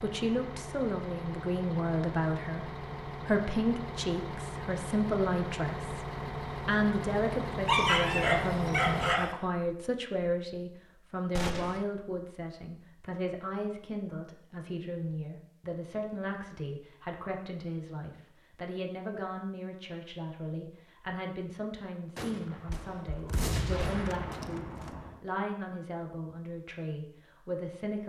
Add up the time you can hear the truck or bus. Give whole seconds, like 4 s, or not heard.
9 s.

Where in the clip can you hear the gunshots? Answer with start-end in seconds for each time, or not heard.
11.3-11.8, 22.1-25.1.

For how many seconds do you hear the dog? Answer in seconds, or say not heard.
2 s.